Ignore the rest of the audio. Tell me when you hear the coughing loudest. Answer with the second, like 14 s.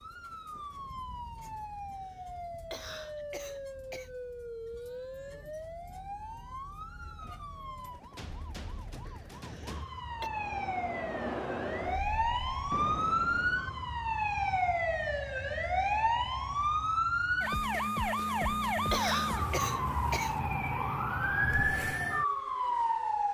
19 s.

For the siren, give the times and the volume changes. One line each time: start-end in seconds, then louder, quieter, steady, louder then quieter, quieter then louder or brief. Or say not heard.
0.0-23.2 louder.